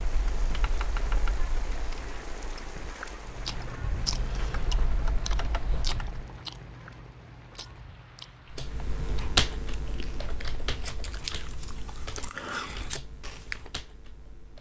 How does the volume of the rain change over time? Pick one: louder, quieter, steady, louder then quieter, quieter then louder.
quieter.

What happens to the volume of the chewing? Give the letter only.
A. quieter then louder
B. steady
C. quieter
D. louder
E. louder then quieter
A.